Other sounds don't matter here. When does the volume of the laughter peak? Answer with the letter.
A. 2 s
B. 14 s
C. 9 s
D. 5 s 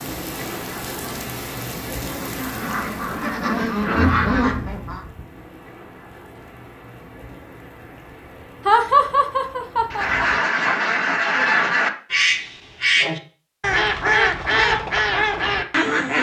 C.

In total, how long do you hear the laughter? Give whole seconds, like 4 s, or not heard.
2 s.